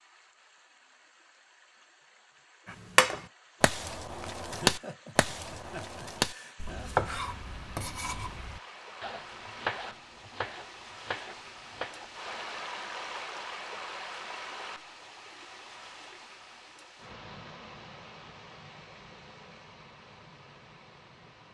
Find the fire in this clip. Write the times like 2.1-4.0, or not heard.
not heard.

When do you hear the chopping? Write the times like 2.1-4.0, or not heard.
3.0-12.6.